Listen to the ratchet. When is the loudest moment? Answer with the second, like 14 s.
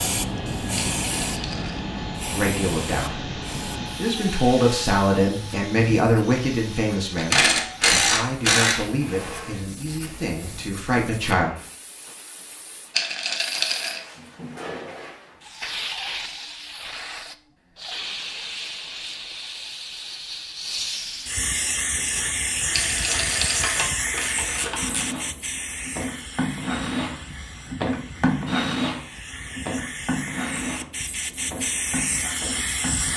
8 s.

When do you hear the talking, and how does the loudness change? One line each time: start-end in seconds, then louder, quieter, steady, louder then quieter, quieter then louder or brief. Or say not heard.
2.3-3.4 brief
4.0-11.5 quieter.